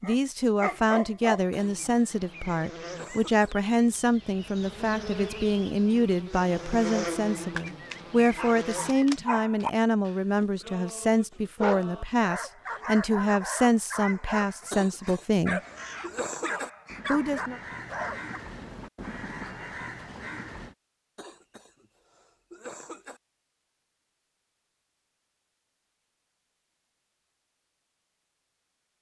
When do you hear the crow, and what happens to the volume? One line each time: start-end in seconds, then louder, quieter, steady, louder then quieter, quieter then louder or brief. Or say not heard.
15.6-20.8 louder.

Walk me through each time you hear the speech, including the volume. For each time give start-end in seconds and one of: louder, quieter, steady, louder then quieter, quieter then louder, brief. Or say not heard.
0.0-15.6 steady
17.1-17.6 brief.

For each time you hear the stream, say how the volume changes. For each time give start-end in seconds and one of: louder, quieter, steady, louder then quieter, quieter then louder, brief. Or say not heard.
not heard.